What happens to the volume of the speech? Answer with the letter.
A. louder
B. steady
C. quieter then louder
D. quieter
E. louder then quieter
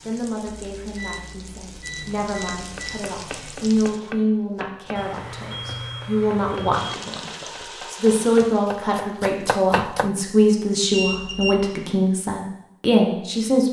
A.